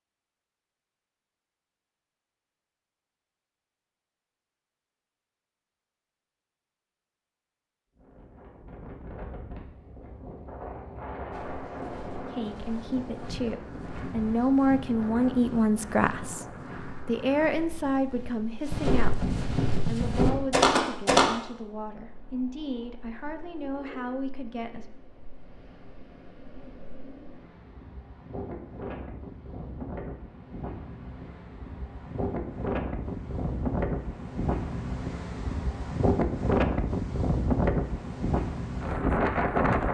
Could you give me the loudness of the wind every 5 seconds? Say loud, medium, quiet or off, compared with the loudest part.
off, quiet, quiet, quiet, quiet, quiet, medium, loud.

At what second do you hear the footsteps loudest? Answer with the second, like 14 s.
21 s.